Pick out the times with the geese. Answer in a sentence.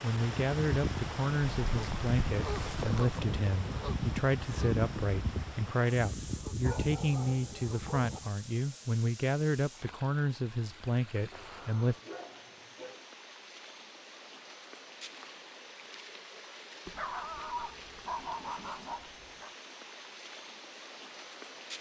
You can hear the geese from 0.1 to 8.3 s.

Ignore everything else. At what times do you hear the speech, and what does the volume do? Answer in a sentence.
You can hear the speech from 0.0 to 11.9 s, at a steady volume.